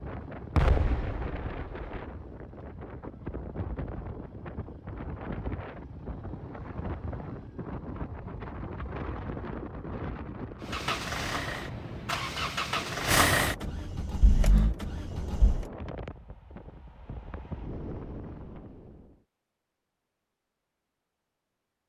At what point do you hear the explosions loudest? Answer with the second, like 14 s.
1 s.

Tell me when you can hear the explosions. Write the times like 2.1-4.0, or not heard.
0.6-1.9.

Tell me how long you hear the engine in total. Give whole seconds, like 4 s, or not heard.
5 s.